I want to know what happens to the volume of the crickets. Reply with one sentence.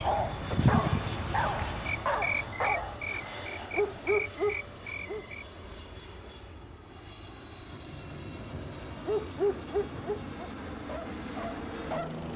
The loudness of the crickets goes down.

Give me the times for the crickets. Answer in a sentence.
The crickets can be heard from 0.0 to 9.1 s.